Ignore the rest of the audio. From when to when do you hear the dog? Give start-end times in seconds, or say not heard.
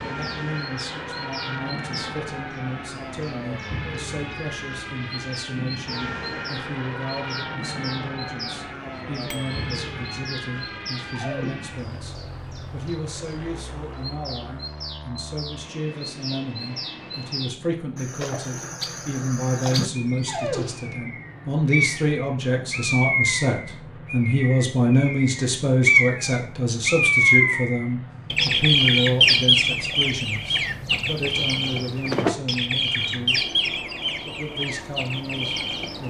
11.1-11.7, 20.1-20.9.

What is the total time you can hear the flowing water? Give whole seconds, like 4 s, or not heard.
not heard.